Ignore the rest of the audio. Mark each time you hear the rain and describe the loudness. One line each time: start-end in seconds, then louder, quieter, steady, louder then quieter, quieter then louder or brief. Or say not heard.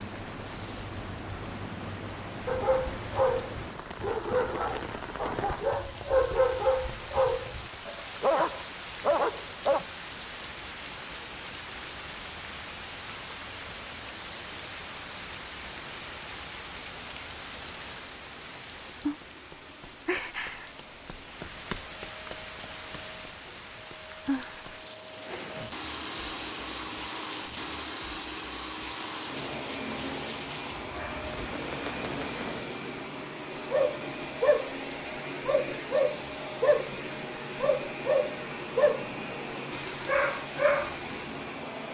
0.0-32.8 steady.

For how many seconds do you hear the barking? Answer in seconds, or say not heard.
13 s.